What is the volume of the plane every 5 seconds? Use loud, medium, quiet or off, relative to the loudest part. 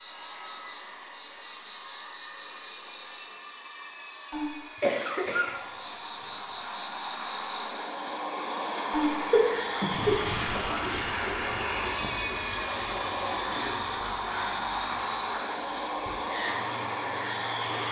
quiet, loud, loud, loud.